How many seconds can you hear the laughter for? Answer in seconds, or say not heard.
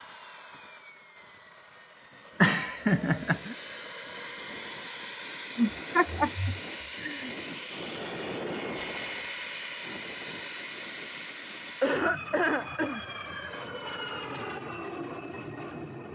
4 s.